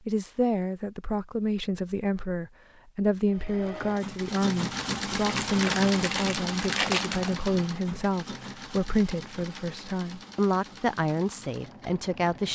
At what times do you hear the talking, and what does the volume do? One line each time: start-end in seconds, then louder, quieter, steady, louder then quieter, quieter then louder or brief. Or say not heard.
0.1-12.5 steady.